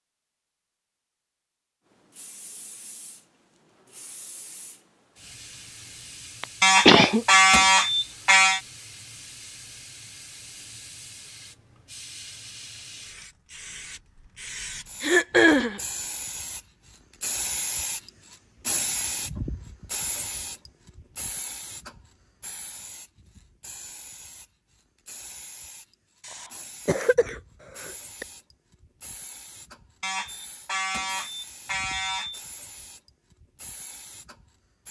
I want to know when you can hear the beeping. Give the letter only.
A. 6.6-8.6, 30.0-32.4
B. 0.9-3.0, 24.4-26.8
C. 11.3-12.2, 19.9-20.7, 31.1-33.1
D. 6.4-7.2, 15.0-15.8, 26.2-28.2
A.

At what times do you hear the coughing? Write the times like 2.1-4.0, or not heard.
6.4-7.2, 15.0-15.8, 26.2-28.2.